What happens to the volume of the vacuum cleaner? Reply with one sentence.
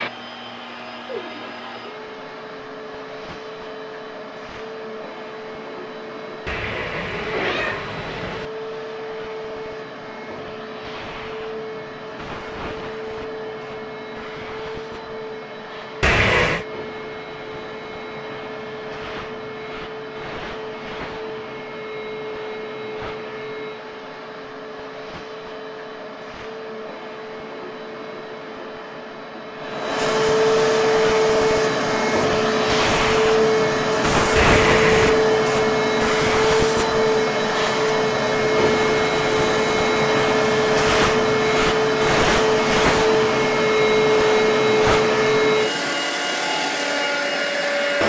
The loudness of the vacuum cleaner goes up.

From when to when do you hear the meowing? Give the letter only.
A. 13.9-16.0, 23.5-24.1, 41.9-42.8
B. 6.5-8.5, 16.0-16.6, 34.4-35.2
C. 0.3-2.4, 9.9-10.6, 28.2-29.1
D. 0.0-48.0
B.